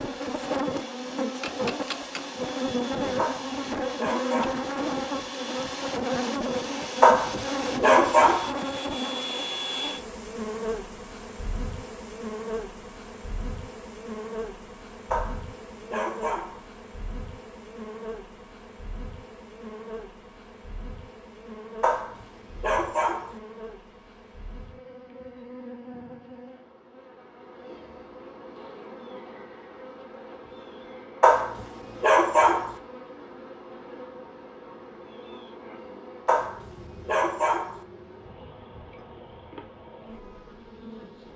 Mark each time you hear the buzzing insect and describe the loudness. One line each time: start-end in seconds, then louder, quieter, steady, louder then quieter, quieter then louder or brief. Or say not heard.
0.0-41.3 quieter.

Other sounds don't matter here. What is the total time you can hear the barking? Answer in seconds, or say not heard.
9 s.